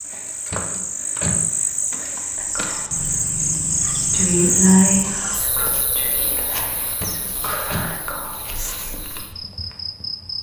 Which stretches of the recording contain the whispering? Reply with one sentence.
The whispering can be heard from 2.4 to 8.9 s.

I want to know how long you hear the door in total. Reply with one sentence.
The door can be heard for 2 seconds in total.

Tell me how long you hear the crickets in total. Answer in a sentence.
You can hear the crickets for 10 seconds altogether.